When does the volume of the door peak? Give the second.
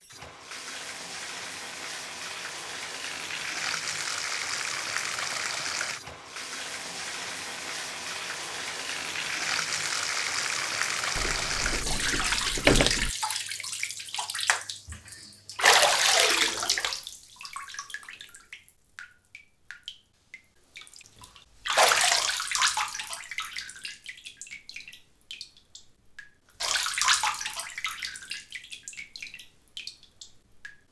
13 s.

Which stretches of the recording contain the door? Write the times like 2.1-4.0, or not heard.
11.2-13.1.